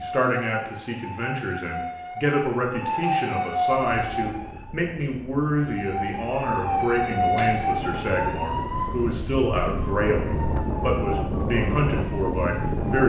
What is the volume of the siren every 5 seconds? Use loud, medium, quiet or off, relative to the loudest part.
loud, loud, medium.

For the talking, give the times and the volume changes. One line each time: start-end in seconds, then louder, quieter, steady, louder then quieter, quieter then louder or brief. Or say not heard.
0.0-13.0 steady.